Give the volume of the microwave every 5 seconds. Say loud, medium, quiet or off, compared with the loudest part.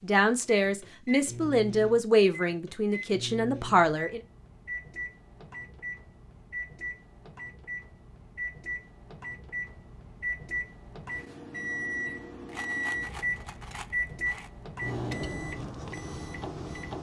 medium, medium, loud, loud.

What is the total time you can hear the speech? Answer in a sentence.
The speech can be heard for 4 seconds in total.